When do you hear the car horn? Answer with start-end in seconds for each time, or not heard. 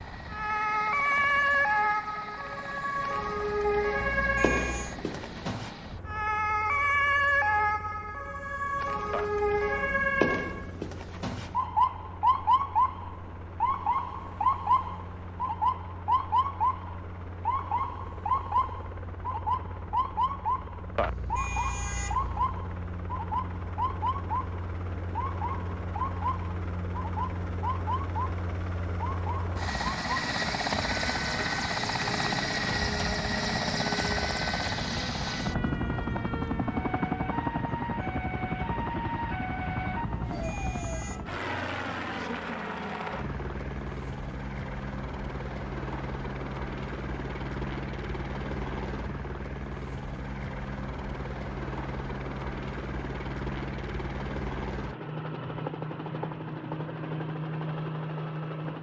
4.0-5.0, 20.9-22.6, 40.3-41.4.